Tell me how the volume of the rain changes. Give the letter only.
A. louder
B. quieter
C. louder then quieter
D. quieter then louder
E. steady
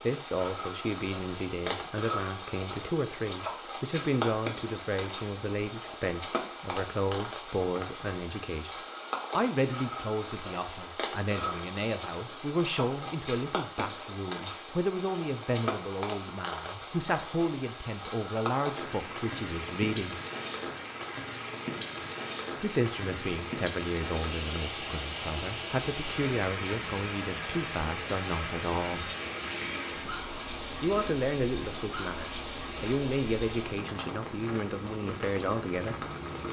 E.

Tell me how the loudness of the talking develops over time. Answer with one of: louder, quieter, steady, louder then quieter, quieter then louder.
steady.